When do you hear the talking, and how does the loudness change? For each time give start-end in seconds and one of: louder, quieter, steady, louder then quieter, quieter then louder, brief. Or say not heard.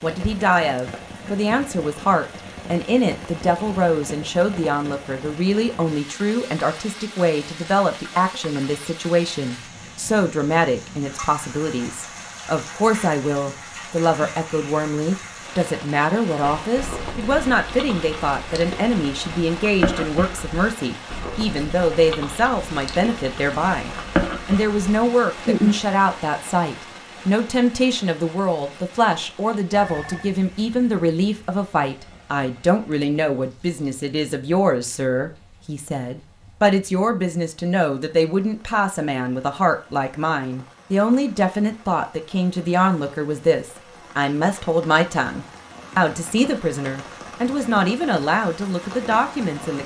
0.0-49.8 steady.